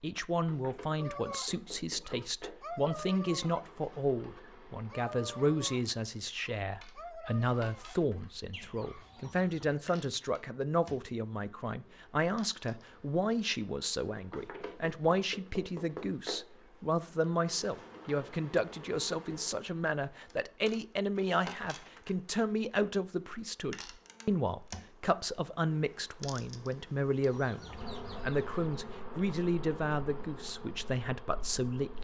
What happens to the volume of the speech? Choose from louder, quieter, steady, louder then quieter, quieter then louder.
steady.